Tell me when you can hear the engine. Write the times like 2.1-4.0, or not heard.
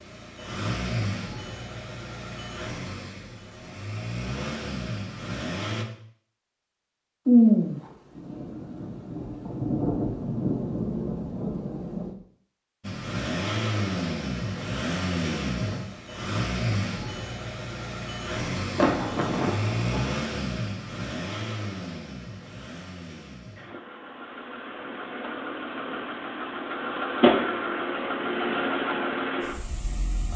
0.0-5.8, 12.8-30.3.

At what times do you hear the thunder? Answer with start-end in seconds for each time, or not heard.
7.2-12.1, 18.8-20.1.